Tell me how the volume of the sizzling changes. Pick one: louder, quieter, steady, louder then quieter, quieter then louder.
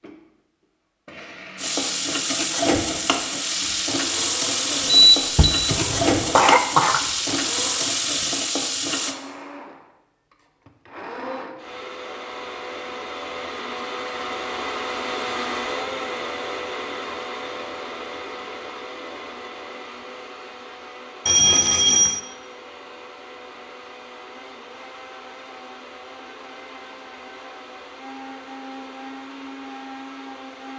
steady.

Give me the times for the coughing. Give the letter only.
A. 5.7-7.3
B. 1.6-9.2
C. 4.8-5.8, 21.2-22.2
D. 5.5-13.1
A.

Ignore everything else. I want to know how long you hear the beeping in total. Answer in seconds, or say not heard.
2 s.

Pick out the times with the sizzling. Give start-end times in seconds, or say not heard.
1.6-9.2.